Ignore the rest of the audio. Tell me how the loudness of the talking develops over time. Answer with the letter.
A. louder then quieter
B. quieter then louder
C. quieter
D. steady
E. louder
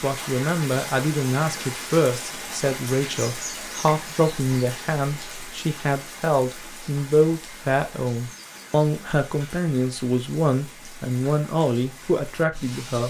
D.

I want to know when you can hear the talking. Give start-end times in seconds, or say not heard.
0.0-13.0.